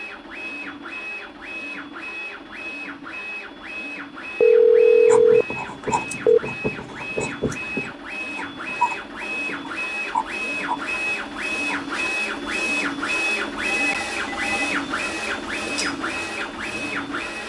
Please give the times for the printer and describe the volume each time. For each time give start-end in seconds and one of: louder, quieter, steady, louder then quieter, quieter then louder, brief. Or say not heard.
0.0-17.4 louder.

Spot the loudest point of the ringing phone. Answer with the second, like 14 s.
5 s.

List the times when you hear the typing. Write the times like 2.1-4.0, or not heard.
not heard.